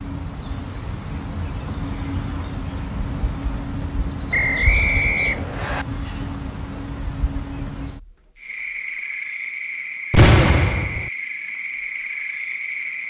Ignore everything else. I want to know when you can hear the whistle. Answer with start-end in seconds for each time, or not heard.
4.3-5.8.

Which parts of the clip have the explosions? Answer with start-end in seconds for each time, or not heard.
10.1-11.1.